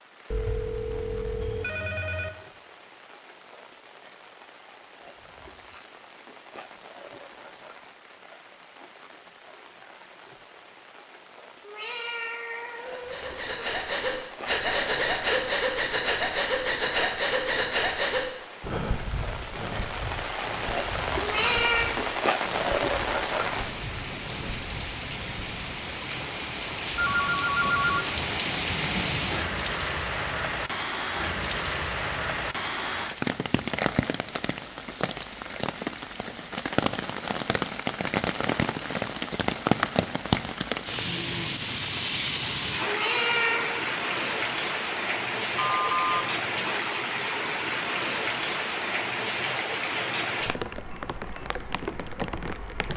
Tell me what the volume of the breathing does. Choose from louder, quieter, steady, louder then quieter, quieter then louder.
quieter.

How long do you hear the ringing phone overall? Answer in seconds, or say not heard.
4 s.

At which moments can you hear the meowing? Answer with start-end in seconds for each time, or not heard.
11.6-13.7, 21.2-21.9, 42.9-43.7.